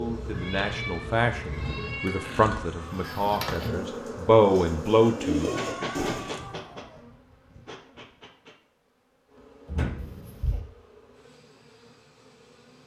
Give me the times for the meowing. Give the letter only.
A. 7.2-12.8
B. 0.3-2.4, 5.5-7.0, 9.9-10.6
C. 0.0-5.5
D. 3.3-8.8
B.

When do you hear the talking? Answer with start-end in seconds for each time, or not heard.
0.0-5.5.